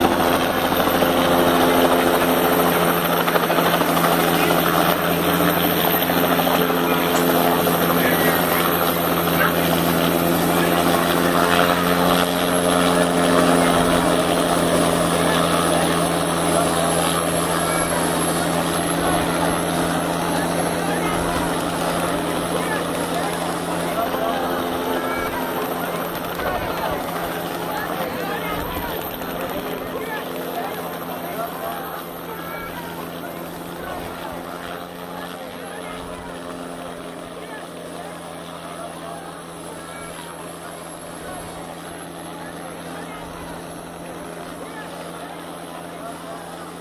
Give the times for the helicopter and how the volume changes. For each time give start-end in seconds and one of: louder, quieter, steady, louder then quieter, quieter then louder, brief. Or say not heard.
0.0-46.7 quieter.